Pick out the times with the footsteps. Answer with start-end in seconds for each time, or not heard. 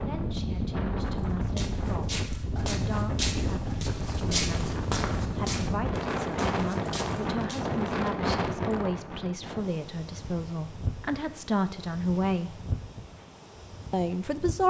1.1-7.7.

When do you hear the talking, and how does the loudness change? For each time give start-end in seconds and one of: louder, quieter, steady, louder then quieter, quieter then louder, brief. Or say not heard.
0.1-12.6 louder
13.9-14.6 brief.